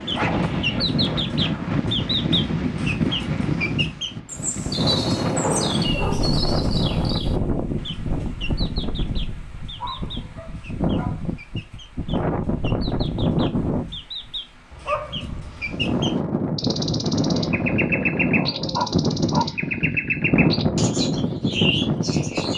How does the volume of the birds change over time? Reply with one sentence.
The volume of the birds goes down, then up.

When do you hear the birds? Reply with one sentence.
You can hear the birds from 0.0 to 22.5 s.